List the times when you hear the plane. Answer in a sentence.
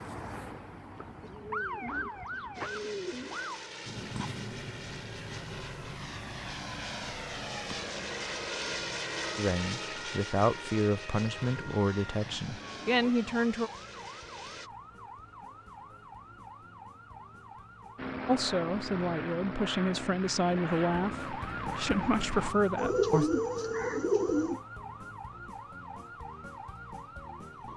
You can hear the plane from 2.5 to 14.7 s and from 17.9 to 22.6 s.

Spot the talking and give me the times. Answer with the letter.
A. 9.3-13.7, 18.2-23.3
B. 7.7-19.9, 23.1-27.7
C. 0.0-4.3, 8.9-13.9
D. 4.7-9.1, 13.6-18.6
A.